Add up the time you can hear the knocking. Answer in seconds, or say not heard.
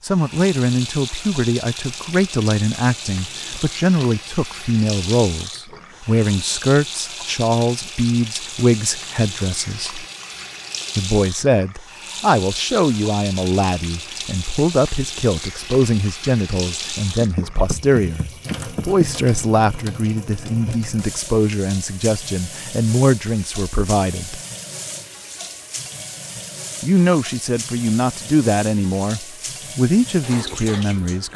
2 s.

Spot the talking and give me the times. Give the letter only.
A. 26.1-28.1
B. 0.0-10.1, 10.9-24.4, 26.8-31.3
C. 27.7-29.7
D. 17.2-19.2
B.